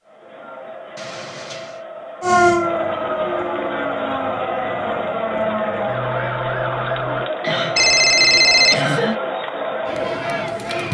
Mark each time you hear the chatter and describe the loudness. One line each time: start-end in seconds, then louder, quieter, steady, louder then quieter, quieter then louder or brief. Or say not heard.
0.0-10.8 louder.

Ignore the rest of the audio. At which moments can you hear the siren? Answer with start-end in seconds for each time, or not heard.
2.2-7.3.